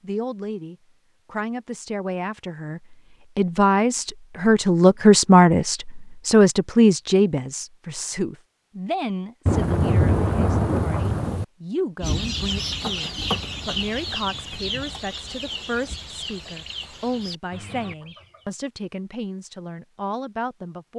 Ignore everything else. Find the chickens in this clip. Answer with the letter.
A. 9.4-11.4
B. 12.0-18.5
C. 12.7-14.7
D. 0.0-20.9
B.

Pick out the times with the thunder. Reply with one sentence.
You can hear the thunder from 9.4 to 11.4 s.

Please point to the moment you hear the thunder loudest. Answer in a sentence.
The loudest moment of the thunder is at 10 seconds.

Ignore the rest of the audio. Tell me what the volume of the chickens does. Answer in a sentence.
The volume of the chickens goes down.